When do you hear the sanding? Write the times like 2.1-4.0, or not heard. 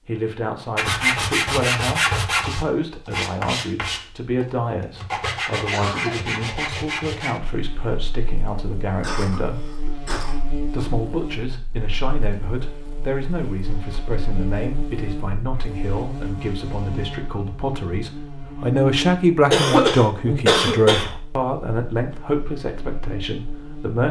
0.8-7.4.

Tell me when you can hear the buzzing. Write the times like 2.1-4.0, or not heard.
7.4-24.0.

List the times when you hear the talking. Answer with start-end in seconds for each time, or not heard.
0.1-9.7, 10.7-24.0.